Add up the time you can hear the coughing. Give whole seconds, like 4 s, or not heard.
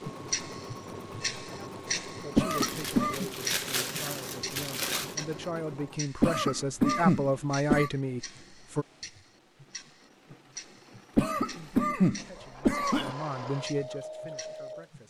5 s.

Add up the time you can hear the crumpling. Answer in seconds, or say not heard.
3 s.